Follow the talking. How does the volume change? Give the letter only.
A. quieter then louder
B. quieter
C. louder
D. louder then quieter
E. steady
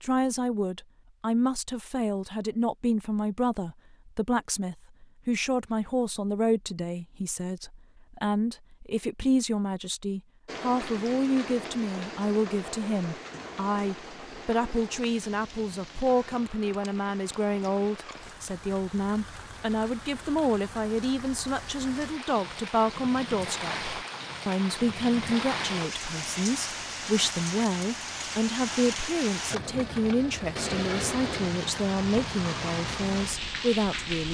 E.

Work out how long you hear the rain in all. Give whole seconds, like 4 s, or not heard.
24 s.